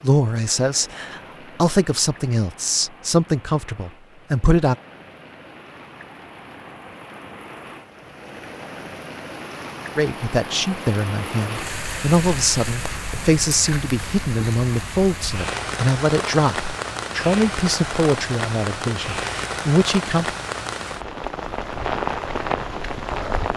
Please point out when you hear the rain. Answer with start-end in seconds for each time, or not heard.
0.0-23.5.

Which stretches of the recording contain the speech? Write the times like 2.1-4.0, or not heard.
0.0-4.8, 9.9-20.4.